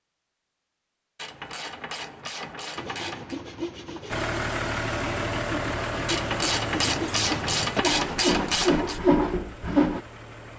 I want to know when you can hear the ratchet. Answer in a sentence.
The ratchet can be heard from 1.1 to 3.4 s and from 6.0 to 9.0 s.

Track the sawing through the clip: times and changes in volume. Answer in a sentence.
The sawing can be heard from 2.8 to 10.0 s, getting louder.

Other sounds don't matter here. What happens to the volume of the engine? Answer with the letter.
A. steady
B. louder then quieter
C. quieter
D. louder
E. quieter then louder
C.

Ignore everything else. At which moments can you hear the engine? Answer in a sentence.
You can hear the engine from 4.0 to 10.5 s.